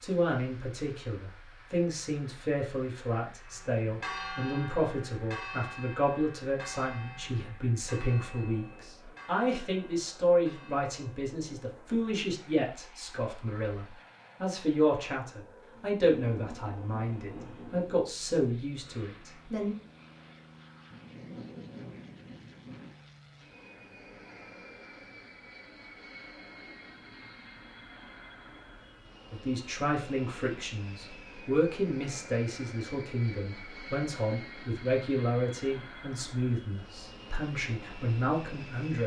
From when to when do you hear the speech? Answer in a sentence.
You can hear the speech from 0.0 to 19.8 s and from 29.3 to 39.0 s.